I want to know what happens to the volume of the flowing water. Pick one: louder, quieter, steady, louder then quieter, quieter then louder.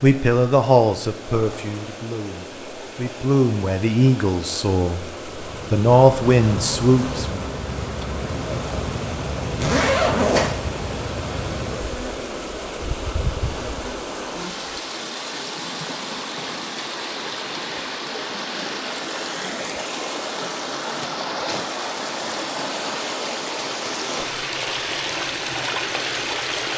louder.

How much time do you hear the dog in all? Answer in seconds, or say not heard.
not heard.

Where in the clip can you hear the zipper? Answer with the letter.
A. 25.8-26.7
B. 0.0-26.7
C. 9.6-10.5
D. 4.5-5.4
C.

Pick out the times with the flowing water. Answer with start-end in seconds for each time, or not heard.
0.0-26.7.